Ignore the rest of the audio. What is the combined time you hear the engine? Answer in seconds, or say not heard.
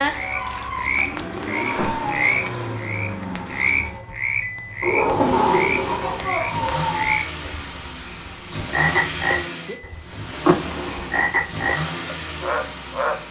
13 s.